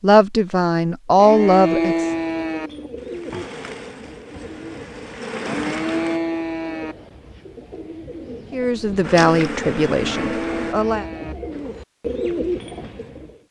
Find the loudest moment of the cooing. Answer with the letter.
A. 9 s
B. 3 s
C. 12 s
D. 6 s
C.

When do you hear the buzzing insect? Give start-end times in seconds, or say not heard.
3.0-6.2, 9.0-10.8.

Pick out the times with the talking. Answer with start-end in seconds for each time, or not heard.
0.0-2.0, 8.5-11.1.